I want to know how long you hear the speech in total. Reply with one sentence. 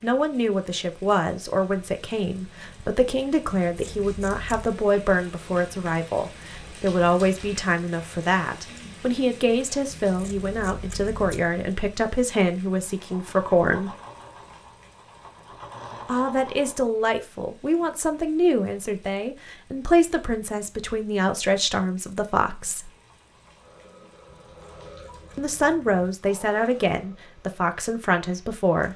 You can hear the speech for 24 seconds altogether.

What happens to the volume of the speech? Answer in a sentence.
The loudness of the speech stays about the same.